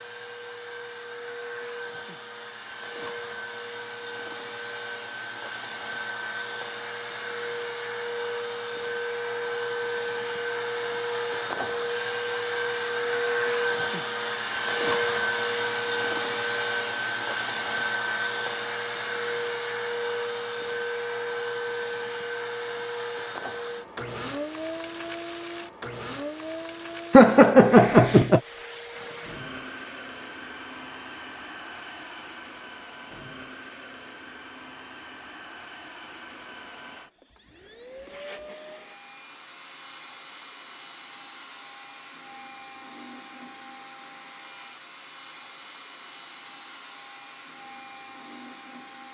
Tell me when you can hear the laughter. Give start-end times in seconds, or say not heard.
27.1-28.4.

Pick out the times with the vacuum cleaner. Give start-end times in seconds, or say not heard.
0.0-49.0.